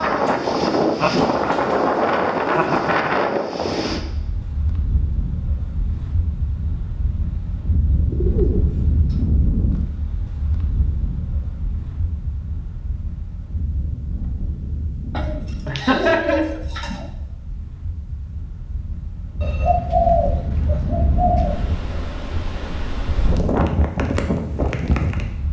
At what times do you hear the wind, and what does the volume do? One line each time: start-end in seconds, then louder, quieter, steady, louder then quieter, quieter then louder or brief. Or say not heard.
0.0-25.4 quieter then louder.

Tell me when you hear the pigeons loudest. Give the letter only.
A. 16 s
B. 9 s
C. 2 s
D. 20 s
D.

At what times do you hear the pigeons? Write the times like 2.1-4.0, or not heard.
0.2-2.9, 8.1-9.2, 15.2-17.1, 19.4-21.6.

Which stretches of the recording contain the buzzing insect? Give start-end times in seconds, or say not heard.
not heard.